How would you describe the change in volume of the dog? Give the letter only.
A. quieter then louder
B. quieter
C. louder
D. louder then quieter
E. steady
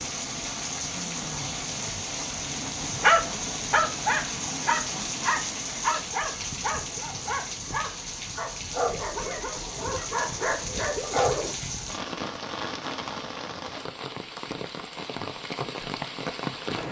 B.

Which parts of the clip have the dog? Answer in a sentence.
You can hear the dog from 3.0 to 11.6 s.